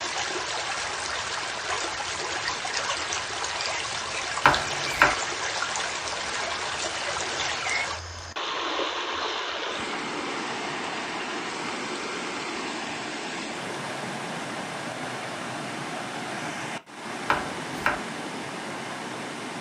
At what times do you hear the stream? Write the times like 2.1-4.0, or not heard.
0.0-19.5.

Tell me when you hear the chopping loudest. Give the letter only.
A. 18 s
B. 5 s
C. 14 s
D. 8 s
B.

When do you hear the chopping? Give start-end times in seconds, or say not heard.
4.5-5.2, 17.3-17.9.